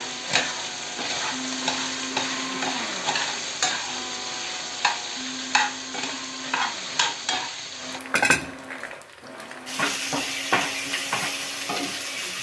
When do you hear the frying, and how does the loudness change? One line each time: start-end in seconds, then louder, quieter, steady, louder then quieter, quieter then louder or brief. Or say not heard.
0.0-12.3 steady.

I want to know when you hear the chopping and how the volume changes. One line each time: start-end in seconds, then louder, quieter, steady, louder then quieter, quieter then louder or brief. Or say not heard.
not heard.